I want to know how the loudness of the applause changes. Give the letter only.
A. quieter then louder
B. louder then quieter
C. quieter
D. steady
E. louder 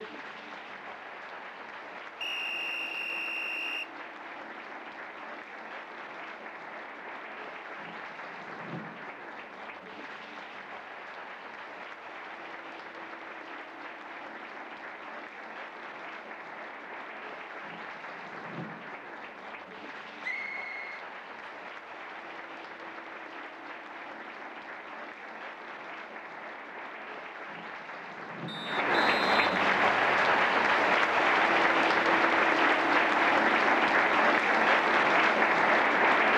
E.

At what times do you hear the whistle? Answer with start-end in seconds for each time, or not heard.
2.2-3.9, 20.2-21.1, 28.4-30.5.